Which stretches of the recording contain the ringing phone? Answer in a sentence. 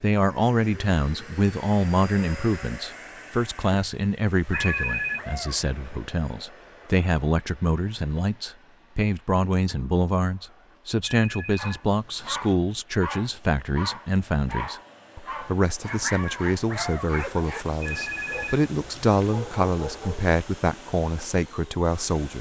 The ringing phone can be heard from 4.5 to 5.2 s, from 11.1 to 12.6 s and from 17.8 to 19.4 s.